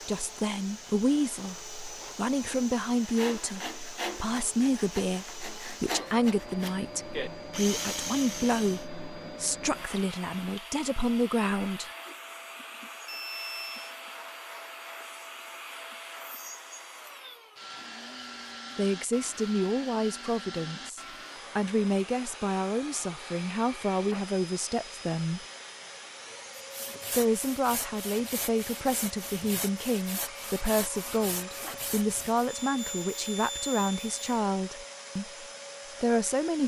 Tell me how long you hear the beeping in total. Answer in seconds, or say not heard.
3 s.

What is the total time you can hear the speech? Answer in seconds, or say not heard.
28 s.